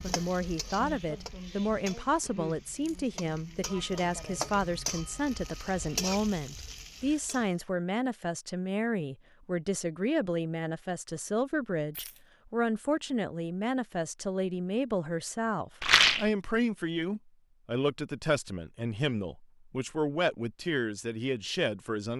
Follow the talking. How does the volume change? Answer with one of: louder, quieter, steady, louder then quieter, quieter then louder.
steady.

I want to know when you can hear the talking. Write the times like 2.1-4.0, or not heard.
0.0-22.1.